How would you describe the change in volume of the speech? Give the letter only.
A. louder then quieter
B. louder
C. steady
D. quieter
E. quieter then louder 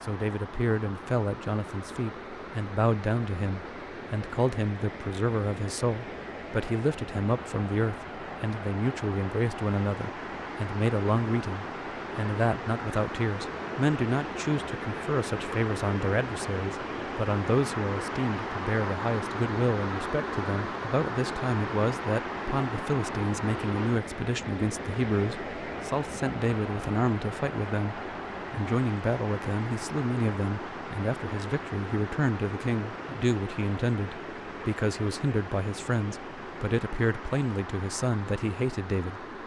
C.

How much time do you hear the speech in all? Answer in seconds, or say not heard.
39 s.